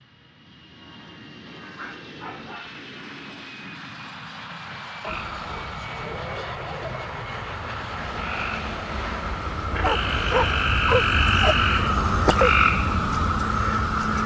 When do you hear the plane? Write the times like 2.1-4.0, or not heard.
0.0-14.1.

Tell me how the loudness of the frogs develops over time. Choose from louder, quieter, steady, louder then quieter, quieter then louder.
louder.